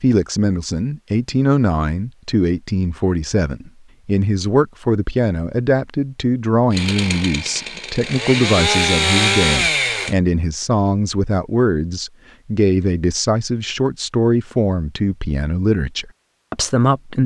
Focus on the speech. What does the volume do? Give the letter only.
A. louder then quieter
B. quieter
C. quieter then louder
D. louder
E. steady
E.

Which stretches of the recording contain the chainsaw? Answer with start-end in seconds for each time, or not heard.
6.7-10.2.